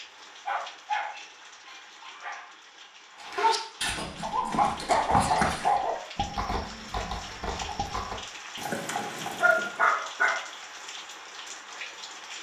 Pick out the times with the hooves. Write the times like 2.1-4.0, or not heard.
3.2-9.8.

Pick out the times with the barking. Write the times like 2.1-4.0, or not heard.
0.5-2.5, 4.2-6.0, 8.9-10.4.